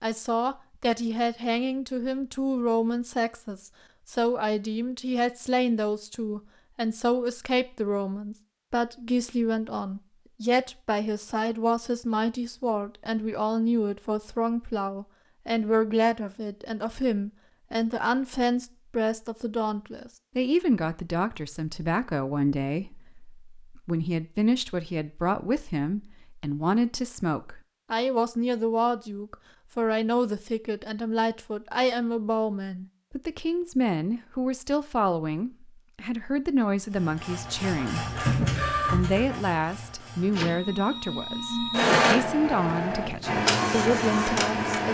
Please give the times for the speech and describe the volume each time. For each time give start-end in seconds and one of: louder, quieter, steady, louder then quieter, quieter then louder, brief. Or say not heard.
0.0-44.8 steady.